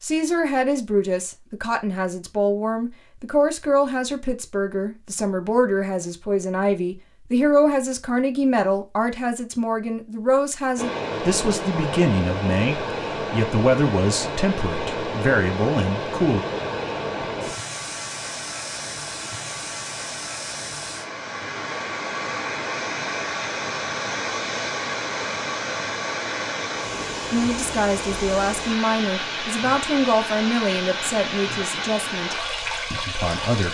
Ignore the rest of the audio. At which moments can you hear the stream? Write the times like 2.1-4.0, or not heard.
10.8-33.6.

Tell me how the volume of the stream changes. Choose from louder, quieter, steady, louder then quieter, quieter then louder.
steady.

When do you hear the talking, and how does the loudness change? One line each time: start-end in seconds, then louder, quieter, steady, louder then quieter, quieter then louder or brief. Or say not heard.
0.0-16.4 steady
27.3-33.6 quieter.